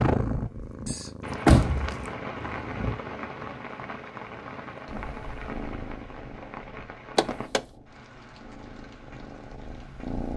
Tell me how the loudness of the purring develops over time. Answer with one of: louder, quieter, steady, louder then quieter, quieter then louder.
quieter.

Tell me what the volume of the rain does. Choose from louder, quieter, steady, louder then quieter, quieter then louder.
quieter.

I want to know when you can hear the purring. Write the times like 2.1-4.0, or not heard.
0.0-10.3.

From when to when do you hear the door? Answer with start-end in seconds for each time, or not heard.
0.8-1.9, 7.2-7.6.